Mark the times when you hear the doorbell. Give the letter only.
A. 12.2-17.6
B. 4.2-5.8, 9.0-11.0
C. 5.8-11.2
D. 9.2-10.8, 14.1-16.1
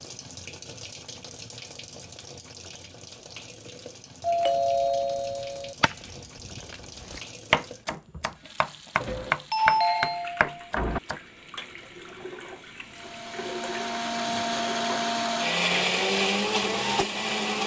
B.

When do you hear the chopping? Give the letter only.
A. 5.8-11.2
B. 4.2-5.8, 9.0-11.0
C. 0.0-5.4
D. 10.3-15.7
A.